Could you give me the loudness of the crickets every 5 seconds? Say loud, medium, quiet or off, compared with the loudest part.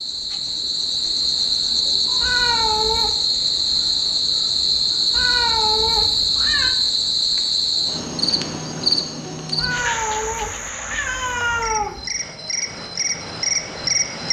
loud, loud, medium.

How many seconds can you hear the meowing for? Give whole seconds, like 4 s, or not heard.
5 s.